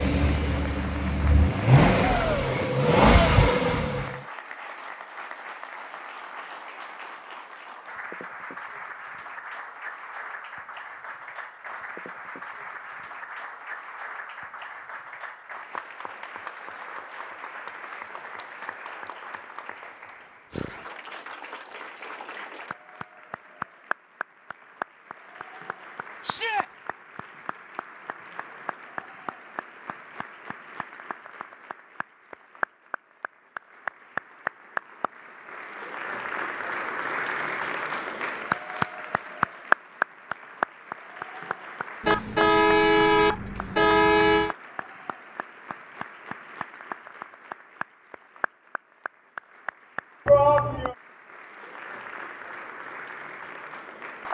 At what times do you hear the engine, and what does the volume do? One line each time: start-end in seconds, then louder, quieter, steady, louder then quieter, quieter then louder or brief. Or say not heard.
0.0-4.2 louder.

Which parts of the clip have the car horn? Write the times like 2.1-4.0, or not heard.
42.0-44.5.